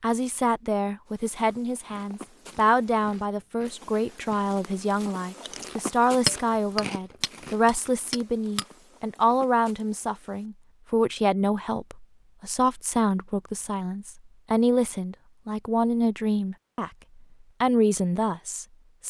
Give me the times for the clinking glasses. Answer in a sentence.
The clinking glasses can be heard from 6.2 to 8.7 s.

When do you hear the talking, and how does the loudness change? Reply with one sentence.
The talking can be heard from 0.0 to 16.9 s, at a steady volume; and briefly from 17.6 to 19.0 s.